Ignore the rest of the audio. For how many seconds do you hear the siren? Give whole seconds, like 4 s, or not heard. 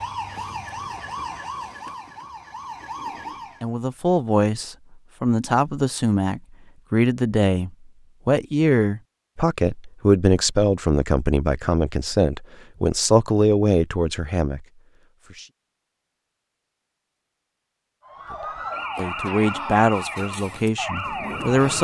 7 s.